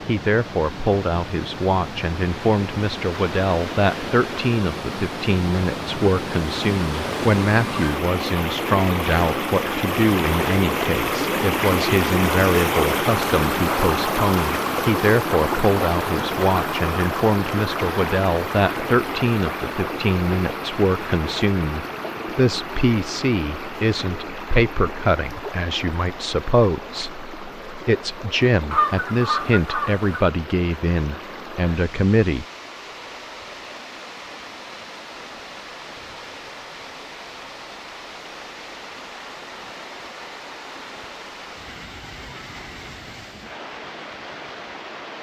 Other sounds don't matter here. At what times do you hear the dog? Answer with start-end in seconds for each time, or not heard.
not heard.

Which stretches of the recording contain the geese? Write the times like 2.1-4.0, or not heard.
28.7-30.1.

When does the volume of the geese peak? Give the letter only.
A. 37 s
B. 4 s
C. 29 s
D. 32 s
C.